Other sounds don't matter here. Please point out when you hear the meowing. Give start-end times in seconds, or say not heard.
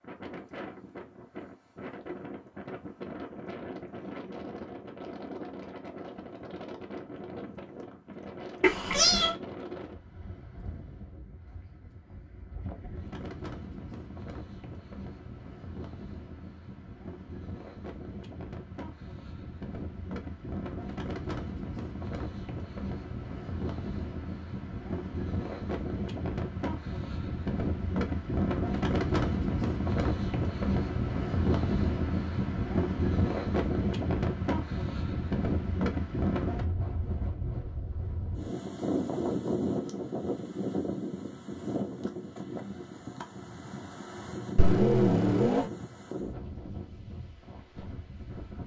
8.6-9.3, 44.5-45.6.